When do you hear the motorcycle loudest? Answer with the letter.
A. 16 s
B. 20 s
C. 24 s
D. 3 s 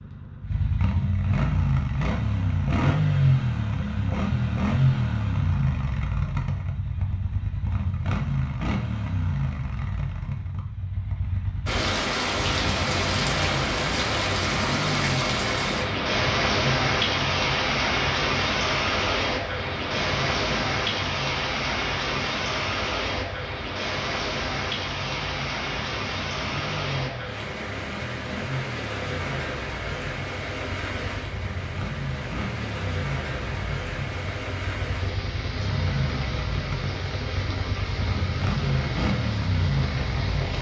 D.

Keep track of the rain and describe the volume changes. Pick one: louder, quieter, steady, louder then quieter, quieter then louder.
quieter.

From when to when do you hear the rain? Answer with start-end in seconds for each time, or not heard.
11.7-40.5.